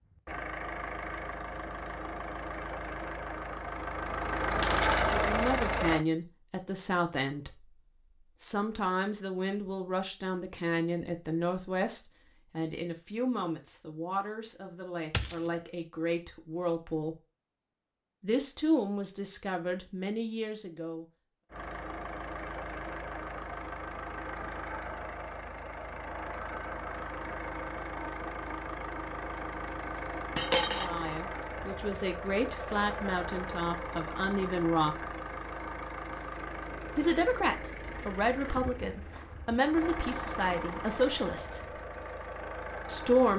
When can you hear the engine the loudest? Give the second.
5 s.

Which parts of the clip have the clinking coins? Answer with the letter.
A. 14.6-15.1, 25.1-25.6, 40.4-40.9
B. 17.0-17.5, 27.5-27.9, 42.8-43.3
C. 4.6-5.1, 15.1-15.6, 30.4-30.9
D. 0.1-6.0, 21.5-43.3
C.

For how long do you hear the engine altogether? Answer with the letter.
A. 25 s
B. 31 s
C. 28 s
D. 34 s
C.